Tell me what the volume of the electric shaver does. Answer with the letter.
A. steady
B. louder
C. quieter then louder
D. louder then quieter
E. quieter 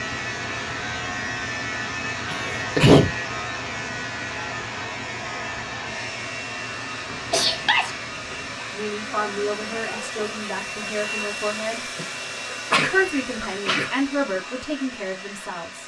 E.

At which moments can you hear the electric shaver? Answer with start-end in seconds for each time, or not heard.
0.0-13.7.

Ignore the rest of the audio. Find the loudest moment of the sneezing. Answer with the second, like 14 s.
3 s.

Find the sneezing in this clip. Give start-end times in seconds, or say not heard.
2.2-3.1, 7.1-8.3, 12.5-13.9.